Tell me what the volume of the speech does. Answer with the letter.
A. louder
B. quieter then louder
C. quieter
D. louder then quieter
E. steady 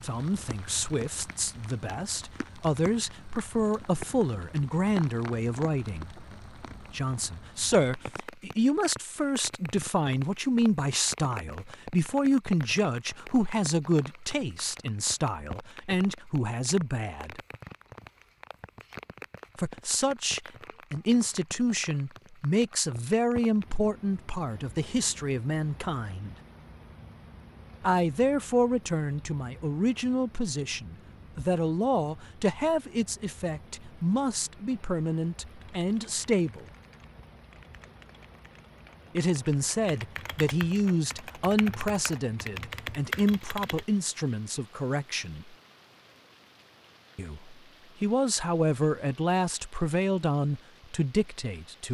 E.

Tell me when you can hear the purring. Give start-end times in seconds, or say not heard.
not heard.